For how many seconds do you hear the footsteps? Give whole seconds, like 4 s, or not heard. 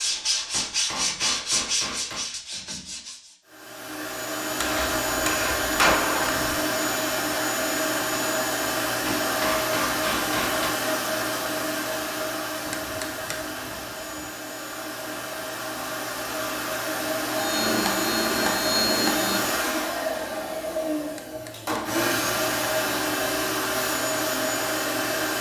not heard.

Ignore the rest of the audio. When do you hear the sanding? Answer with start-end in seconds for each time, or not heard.
0.0-3.4.